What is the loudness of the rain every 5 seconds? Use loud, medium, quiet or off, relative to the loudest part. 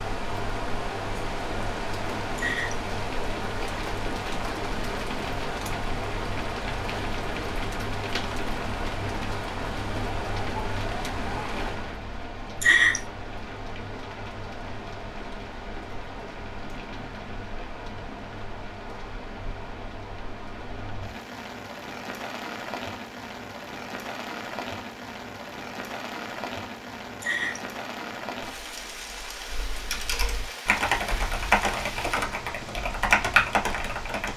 loud, loud, loud, medium, medium, medium, medium.